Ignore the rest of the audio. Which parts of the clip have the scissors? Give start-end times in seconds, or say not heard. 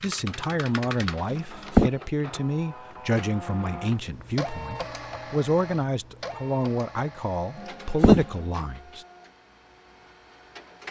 1.3-1.9, 7.7-8.2.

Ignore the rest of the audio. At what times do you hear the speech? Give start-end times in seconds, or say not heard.
0.0-9.1.